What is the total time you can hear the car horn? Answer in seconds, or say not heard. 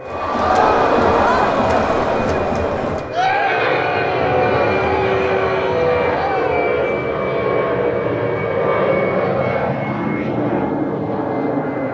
2 s.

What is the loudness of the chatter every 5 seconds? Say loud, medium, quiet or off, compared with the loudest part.
loud, medium, off.